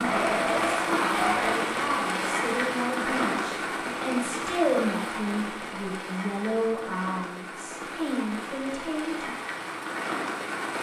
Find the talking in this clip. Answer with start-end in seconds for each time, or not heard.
0.2-9.3.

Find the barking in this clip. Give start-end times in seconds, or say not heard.
0.0-1.6.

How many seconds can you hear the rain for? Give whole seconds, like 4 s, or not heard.
11 s.